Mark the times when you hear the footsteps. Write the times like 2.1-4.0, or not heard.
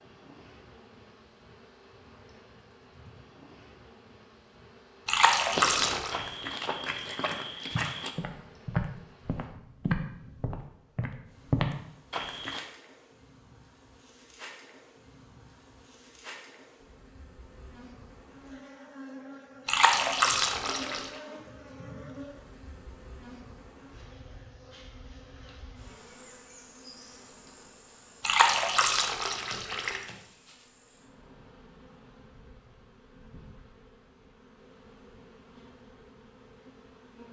5.5-12.6.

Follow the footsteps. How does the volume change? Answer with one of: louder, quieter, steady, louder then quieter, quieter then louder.
louder.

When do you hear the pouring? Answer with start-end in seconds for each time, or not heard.
5.0-6.2, 19.6-21.1, 28.2-30.0.